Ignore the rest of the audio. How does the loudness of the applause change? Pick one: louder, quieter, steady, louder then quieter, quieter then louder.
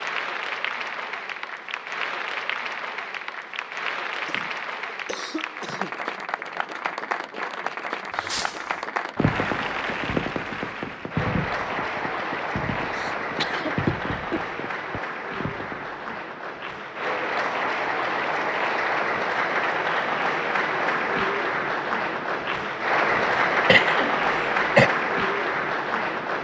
louder.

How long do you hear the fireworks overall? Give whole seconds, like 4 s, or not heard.
8 s.